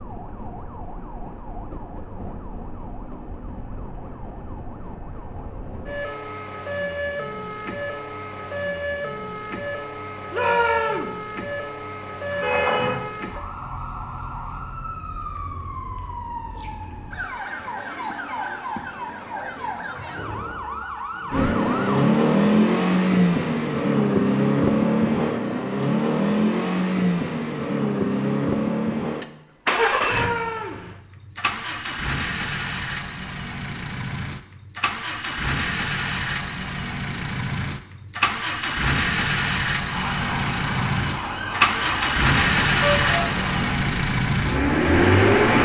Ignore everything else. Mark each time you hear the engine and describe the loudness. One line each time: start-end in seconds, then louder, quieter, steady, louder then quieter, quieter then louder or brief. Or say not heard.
21.3-45.6 quieter then louder.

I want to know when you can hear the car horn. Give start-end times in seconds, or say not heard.
12.3-13.0, 42.8-43.3.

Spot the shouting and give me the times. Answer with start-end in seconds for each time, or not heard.
10.3-11.2, 30.0-30.9.